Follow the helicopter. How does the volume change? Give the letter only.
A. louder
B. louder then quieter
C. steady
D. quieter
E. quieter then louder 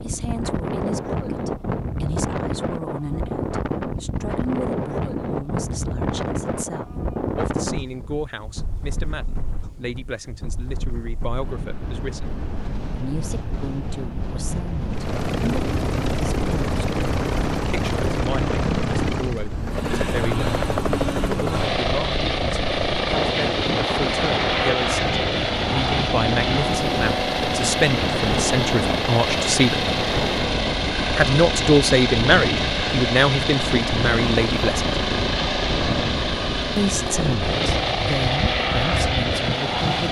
C.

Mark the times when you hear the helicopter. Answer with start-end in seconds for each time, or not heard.
14.9-40.0.